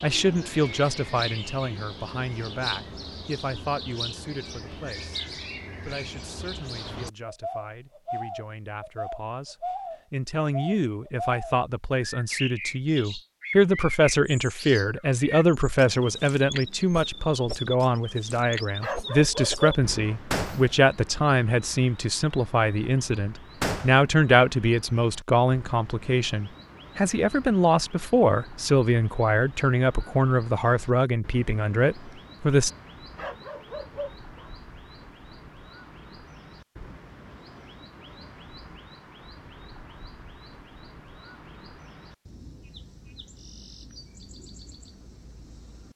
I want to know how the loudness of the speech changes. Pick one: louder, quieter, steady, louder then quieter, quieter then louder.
louder.